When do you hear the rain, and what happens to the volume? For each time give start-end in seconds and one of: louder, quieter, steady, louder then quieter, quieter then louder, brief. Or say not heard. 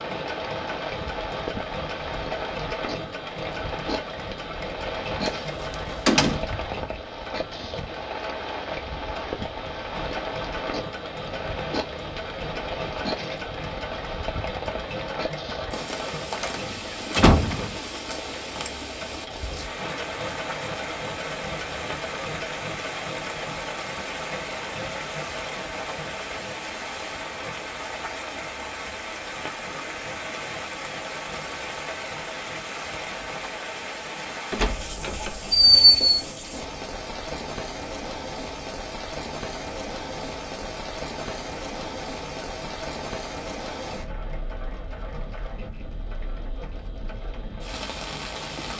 0.0-48.7 steady.